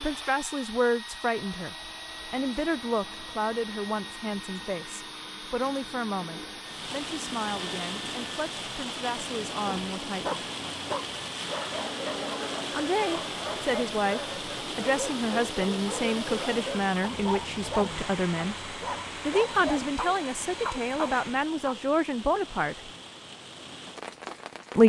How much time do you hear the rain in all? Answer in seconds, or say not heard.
18 s.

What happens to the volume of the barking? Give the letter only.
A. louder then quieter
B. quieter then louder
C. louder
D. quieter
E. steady
E.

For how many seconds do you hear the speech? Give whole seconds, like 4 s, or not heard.
21 s.